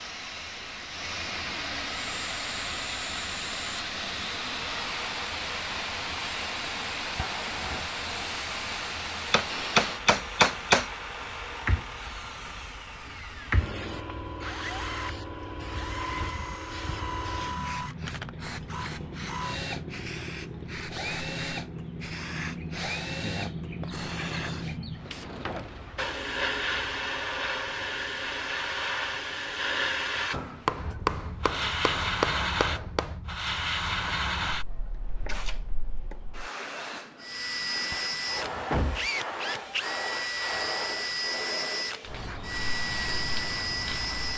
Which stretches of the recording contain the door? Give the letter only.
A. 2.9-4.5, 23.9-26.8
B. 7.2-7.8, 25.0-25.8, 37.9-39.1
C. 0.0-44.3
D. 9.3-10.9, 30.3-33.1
B.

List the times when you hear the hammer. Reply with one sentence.
You can hear the hammer from 9.3 to 10.9 s and from 30.3 to 33.1 s.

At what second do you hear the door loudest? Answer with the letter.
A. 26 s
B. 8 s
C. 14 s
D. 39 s
D.